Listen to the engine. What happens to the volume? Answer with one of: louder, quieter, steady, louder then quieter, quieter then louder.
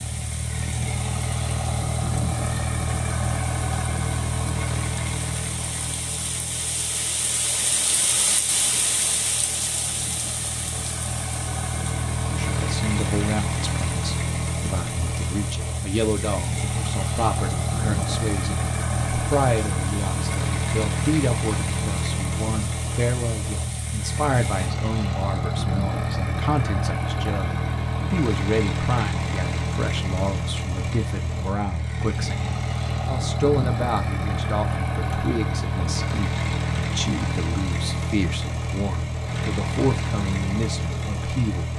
steady.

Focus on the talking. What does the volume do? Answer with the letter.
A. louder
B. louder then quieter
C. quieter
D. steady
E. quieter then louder
D.